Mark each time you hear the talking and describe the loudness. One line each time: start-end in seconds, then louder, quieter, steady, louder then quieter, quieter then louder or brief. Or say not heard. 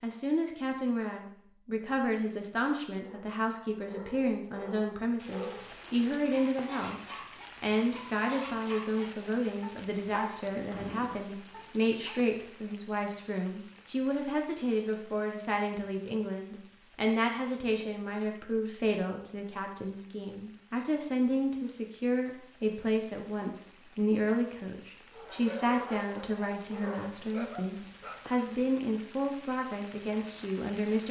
0.0-31.0 steady.